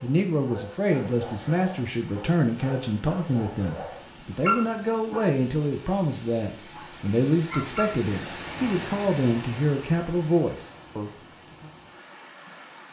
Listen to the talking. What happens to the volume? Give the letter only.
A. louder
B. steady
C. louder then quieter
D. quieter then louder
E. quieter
B.